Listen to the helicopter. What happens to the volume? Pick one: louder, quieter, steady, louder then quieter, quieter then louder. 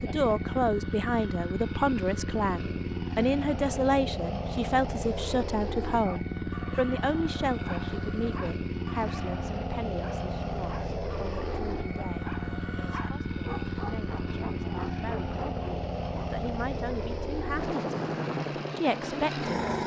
steady.